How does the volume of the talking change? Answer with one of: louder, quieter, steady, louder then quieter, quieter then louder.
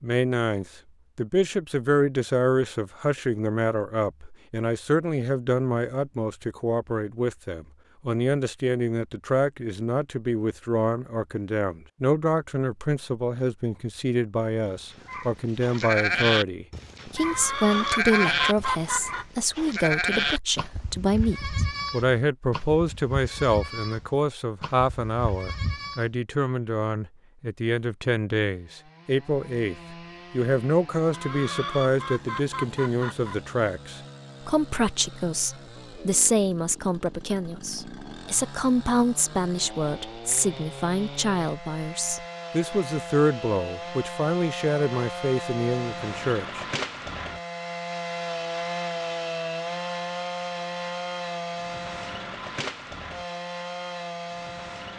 steady.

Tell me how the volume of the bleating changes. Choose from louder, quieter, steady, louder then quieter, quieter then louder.
quieter.